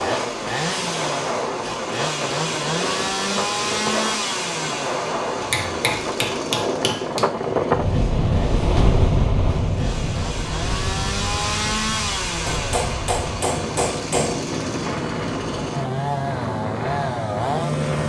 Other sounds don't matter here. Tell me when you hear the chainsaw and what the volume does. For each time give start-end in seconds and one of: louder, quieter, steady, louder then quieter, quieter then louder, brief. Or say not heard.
0.0-18.0 quieter then louder.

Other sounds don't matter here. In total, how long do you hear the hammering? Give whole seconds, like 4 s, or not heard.
4 s.